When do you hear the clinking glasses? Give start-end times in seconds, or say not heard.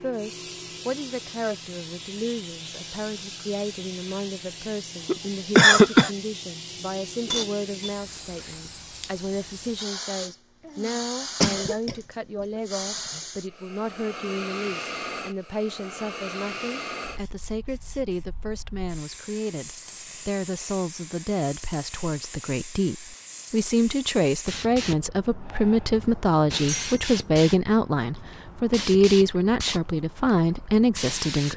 7.1-8.6.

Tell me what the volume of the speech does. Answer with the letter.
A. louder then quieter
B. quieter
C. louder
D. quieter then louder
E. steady
C.